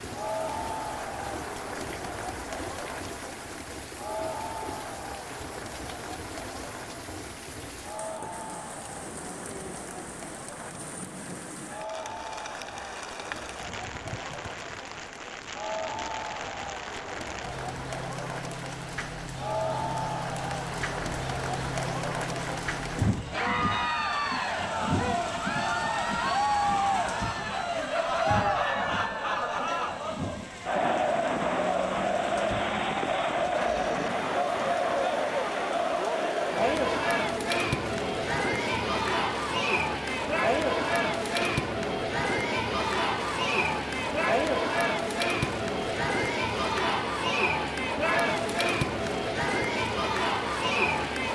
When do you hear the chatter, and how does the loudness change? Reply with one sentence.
You can hear the chatter from 0.0 to 51.2 s, getting louder.